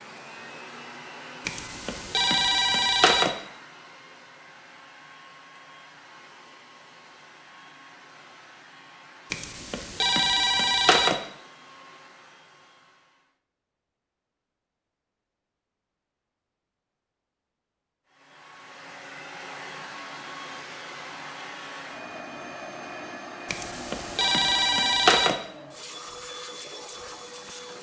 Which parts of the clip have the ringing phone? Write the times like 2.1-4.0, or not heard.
1.4-3.3, 9.3-11.2, 23.4-25.4.